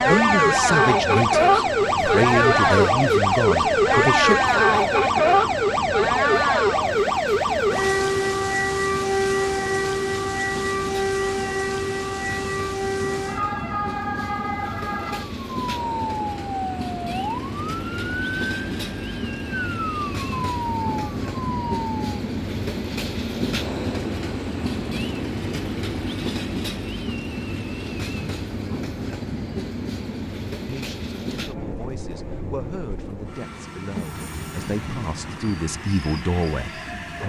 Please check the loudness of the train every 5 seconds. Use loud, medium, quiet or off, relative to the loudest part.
medium, medium, medium, loud, loud, loud, medium, medium.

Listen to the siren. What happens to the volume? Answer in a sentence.
The loudness of the siren goes down.